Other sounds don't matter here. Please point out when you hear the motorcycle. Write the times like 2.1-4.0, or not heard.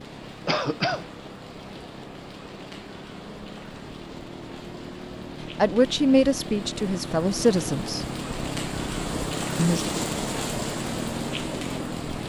0.0-12.2.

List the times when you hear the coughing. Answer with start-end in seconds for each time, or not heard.
0.5-1.1.